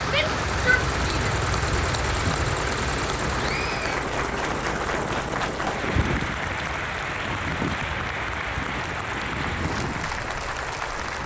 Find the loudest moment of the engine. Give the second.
2 s.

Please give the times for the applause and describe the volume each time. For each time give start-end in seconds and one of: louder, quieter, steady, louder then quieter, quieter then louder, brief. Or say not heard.
0.0-11.2 steady.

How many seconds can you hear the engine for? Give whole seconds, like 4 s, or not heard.
11 s.